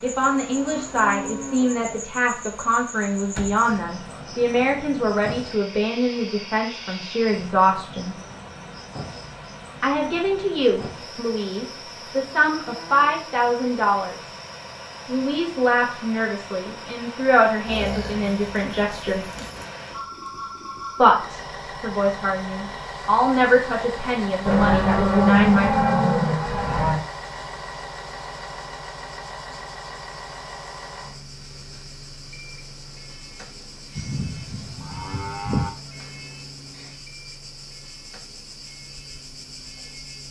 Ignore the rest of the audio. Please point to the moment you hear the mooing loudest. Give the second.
25 s.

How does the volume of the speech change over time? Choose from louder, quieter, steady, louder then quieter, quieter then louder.
steady.